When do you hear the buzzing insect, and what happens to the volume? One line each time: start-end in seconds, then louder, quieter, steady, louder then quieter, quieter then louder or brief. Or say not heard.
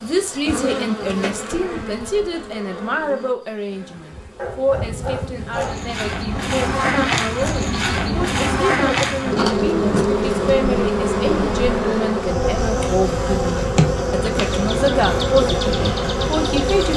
0.0-16.9 louder.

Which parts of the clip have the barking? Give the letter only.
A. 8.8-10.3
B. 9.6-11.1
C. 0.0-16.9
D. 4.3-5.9
D.